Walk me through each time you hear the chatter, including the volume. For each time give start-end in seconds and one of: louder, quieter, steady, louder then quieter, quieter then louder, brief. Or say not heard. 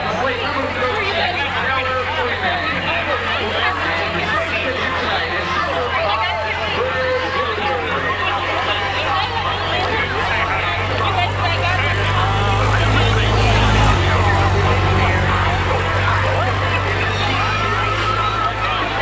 0.0-18.9 steady.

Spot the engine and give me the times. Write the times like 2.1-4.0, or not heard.
0.1-18.9.